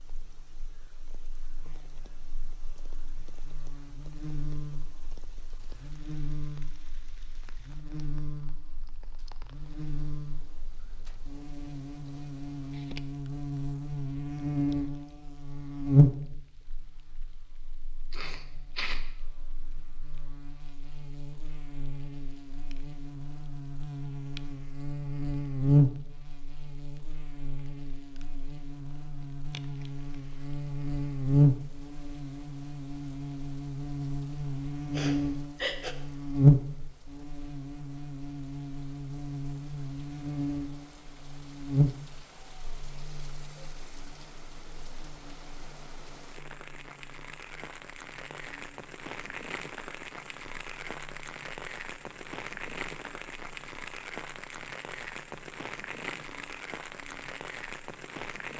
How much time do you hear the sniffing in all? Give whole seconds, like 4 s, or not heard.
2 s.